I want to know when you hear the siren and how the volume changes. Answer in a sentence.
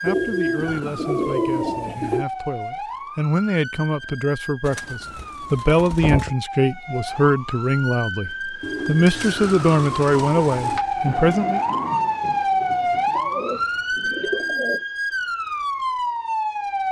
You can hear the siren from 0.0 to 16.8 s, getting louder.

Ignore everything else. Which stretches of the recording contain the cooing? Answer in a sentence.
You can hear the cooing from 0.1 to 2.2 s, from 4.7 to 6.3 s, from 8.6 to 10.8 s and from 13.1 to 14.8 s.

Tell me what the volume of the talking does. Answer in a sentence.
The loudness of the talking goes up.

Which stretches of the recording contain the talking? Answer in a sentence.
The talking can be heard from 0.0 to 11.6 s.